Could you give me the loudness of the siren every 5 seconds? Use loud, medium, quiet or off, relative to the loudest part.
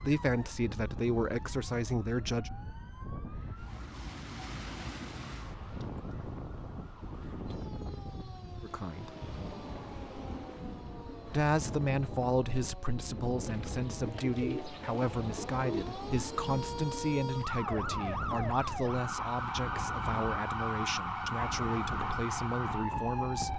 quiet, quiet, quiet, loud, loud.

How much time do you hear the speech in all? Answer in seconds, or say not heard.
15 s.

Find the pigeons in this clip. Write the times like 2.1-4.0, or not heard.
13.4-15.8.